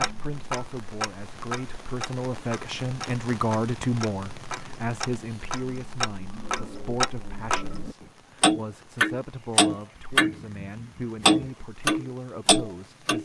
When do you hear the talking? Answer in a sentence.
You can hear the talking from 0.0 to 13.2 s.